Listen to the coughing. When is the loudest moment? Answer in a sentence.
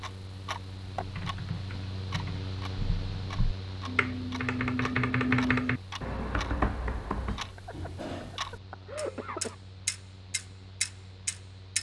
The volume of the coughing peaks at 9 seconds.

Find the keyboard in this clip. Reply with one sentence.
The keyboard can be heard from 0.9 to 7.5 s.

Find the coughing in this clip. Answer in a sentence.
The coughing can be heard from 7.5 to 9.6 s.